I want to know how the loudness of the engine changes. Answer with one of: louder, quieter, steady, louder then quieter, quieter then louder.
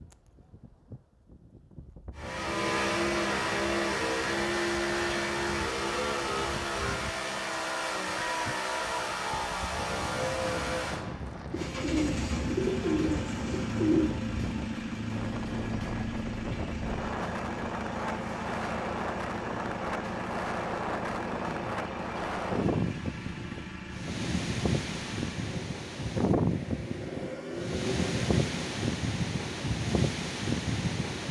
quieter.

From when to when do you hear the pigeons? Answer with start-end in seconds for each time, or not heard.
11.5-14.1.